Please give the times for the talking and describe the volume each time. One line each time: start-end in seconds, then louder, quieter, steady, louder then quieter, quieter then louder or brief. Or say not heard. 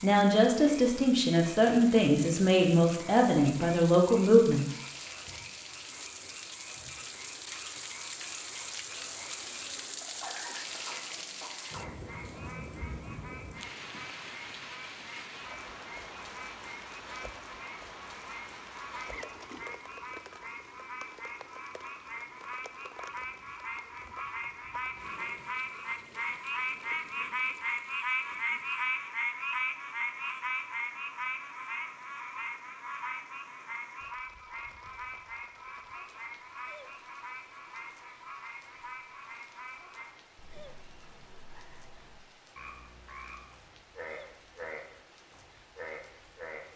0.0-4.7 steady.